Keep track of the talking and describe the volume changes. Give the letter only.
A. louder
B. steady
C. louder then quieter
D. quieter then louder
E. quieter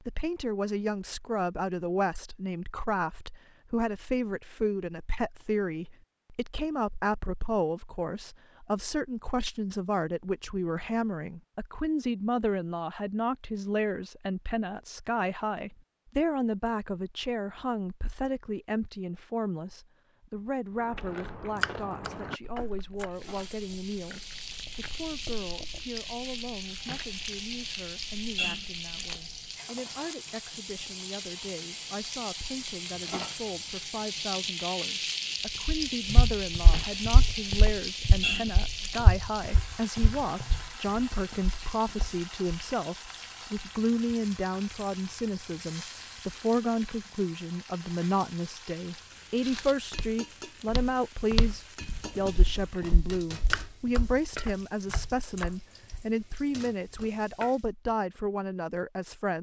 D.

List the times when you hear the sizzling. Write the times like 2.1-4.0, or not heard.
23.1-57.7.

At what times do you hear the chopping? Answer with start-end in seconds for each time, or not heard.
21.6-23.1, 53.5-55.5.